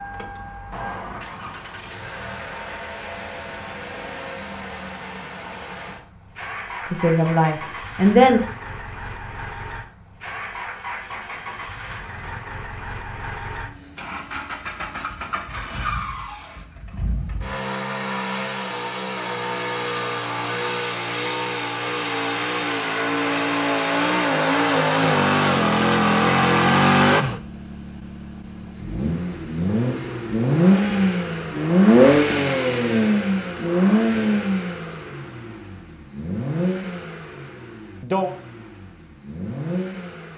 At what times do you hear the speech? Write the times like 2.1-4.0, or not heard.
6.9-8.4.